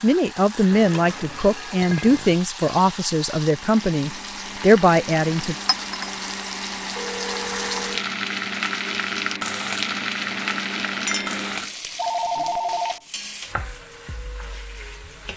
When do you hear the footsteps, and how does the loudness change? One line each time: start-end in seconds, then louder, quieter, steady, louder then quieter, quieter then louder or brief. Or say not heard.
not heard.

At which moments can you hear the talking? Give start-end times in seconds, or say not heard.
0.0-5.5.